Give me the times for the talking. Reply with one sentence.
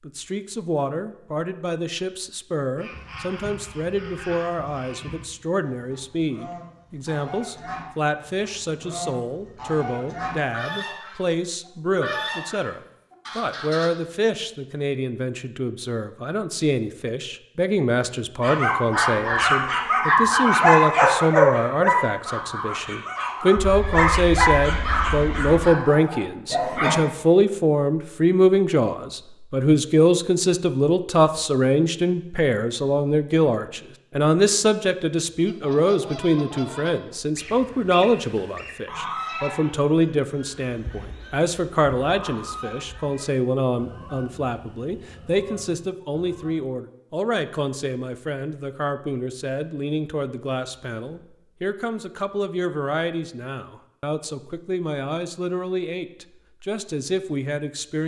You can hear the talking from 0.0 to 58.0 s.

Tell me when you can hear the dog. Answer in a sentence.
You can hear the dog from 18.4 to 26.9 s.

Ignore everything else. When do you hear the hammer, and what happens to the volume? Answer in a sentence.
The hammer can't be heard in this clip.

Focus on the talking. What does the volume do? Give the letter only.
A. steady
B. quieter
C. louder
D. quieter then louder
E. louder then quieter
E.